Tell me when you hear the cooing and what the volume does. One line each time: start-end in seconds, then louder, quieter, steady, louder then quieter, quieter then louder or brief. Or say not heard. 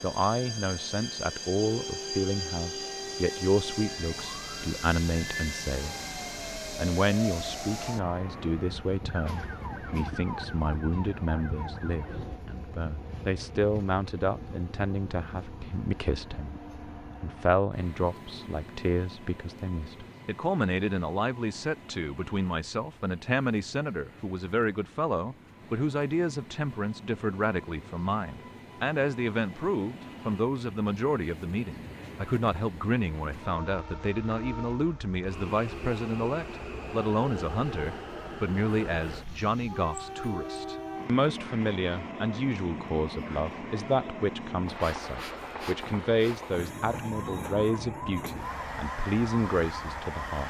not heard.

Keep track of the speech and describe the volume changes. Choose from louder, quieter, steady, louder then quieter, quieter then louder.
steady.